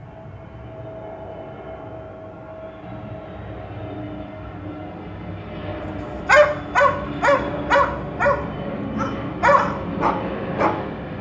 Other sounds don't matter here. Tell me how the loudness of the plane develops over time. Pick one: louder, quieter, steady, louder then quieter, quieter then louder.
louder.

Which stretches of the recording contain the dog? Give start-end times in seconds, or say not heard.
6.2-8.3, 8.9-10.8.